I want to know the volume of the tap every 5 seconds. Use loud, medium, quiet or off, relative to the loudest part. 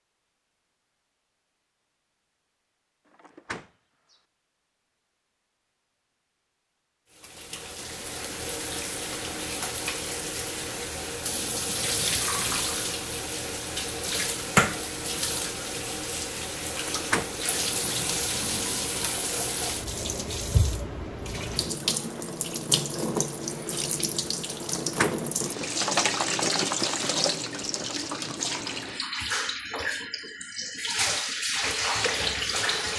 off, medium, loud, loud, loud, loud, loud.